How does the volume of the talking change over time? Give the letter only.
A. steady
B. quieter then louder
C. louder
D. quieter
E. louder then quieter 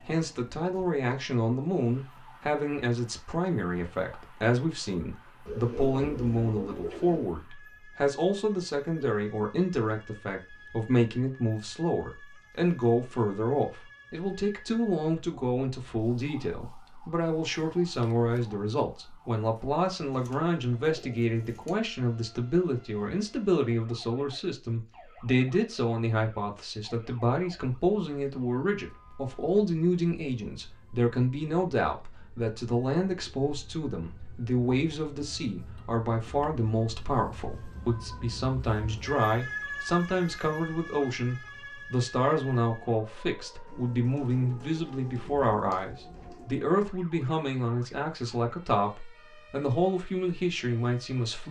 A.